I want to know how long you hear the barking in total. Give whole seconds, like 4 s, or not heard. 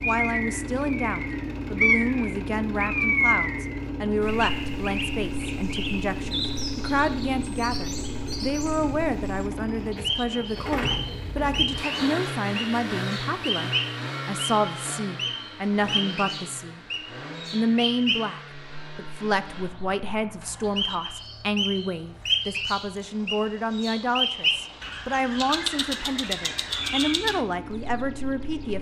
not heard.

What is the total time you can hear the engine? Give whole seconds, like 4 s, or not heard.
29 s.